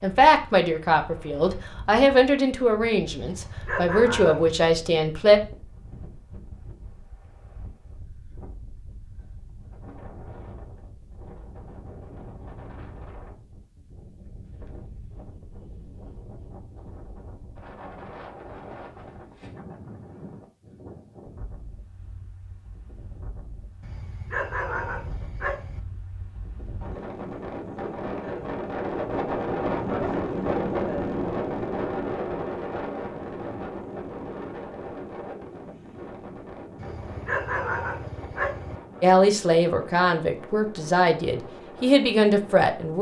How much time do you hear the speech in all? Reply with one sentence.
You can hear the speech for 9 seconds altogether.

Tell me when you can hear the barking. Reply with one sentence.
You can hear the barking from 3.2 to 4.7 s, from 23.8 to 25.8 s and from 36.8 to 38.8 s.